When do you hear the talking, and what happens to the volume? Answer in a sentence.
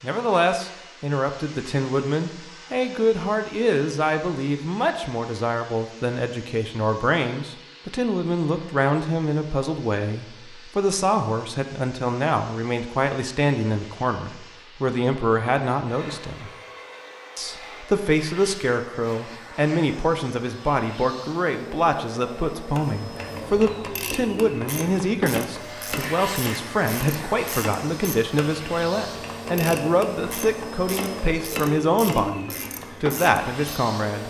You can hear the talking from 0.0 to 16.5 s, at a steady volume; and from 17.4 to 34.2 s, at a steady volume.